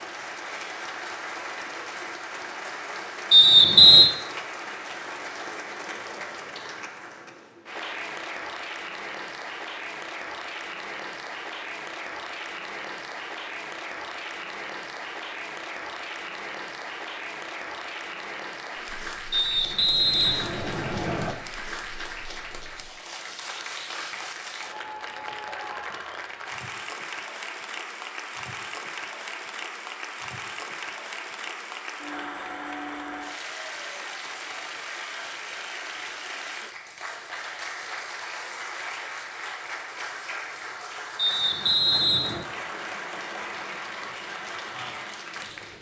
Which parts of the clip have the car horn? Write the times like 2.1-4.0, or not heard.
not heard.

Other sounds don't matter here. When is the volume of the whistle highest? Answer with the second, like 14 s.
4 s.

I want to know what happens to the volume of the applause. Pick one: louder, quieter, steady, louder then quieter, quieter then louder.
steady.